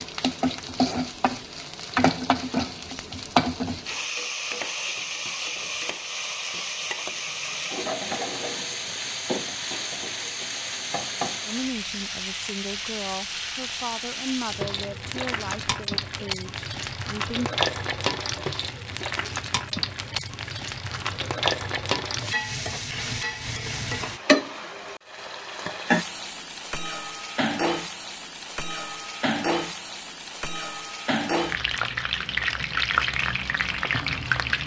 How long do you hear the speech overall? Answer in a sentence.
The speech can be heard for 6 seconds in total.